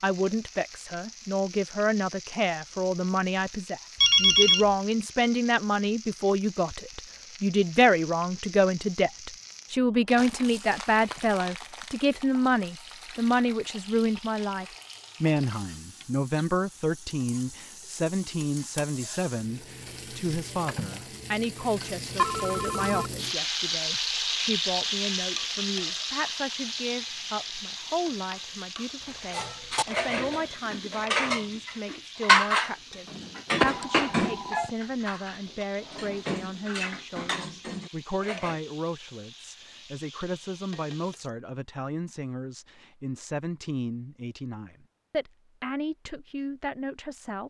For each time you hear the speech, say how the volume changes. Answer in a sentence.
You can hear the speech from 0.0 to 47.4 s, getting quieter.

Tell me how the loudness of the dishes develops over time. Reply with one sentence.
The loudness of the dishes goes up, then down.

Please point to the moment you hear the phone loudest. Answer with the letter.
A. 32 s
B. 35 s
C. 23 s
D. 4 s
D.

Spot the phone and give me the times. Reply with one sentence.
The phone can be heard from 4.0 to 4.7 s, from 22.1 to 23.1 s and from 33.7 to 34.7 s.